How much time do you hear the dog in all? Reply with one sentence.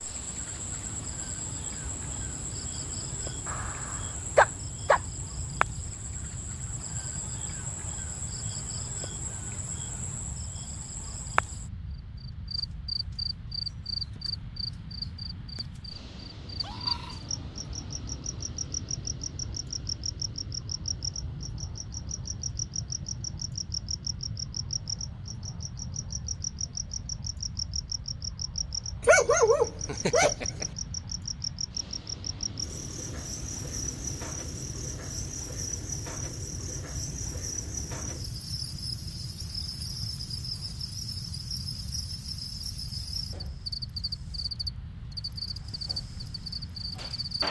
The dog can be heard for 3 seconds in total.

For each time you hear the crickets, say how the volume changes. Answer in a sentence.
The crickets can be heard from 0.0 to 47.4 s, at a steady volume.